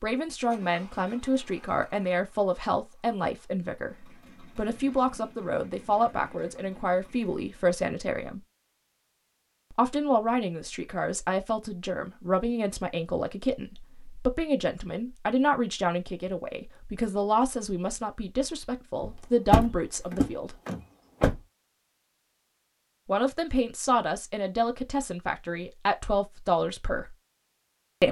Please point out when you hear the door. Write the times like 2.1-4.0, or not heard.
19.0-21.4.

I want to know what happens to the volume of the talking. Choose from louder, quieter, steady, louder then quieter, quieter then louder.
steady.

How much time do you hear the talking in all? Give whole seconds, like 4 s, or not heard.
23 s.